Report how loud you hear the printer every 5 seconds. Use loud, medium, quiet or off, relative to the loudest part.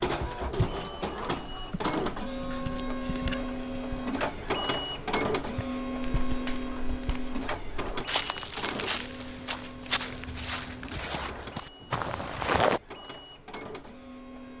loud, loud, quiet.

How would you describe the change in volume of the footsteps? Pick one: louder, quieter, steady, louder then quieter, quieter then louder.
louder.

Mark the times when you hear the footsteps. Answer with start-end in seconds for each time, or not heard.
5.5-12.8.